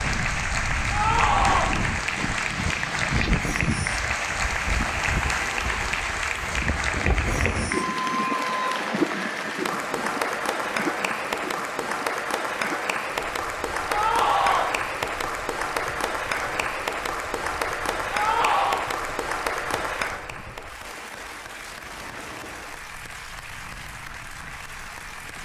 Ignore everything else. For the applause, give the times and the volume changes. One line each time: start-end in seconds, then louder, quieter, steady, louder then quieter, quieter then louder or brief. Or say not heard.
0.0-25.3 quieter.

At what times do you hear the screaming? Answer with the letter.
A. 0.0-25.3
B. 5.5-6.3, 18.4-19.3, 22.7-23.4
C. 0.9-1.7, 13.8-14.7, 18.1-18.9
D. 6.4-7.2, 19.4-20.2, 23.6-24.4
C.